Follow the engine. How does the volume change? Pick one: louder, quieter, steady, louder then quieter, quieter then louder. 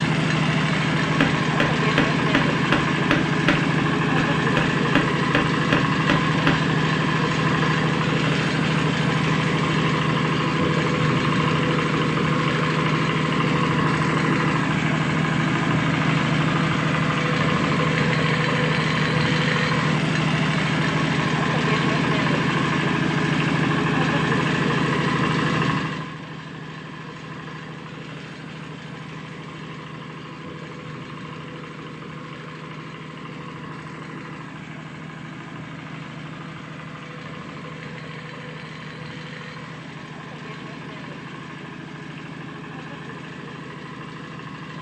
quieter.